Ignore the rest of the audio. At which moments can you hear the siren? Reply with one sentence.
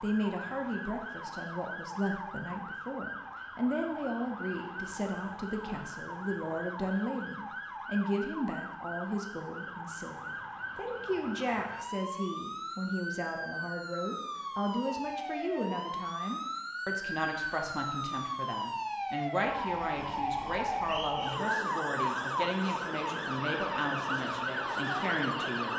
The siren can be heard from 0.0 to 25.7 s.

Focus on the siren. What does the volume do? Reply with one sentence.
The volume of the siren goes up.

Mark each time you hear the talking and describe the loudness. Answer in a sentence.
The talking can be heard from 0.0 to 25.7 s, at a steady volume.